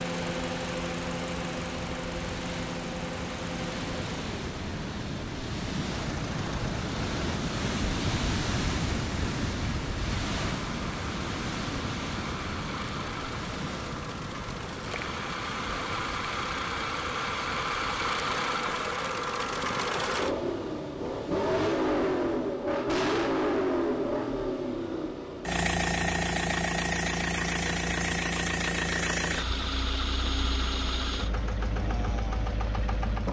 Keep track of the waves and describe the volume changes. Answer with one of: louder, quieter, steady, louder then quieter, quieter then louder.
louder then quieter.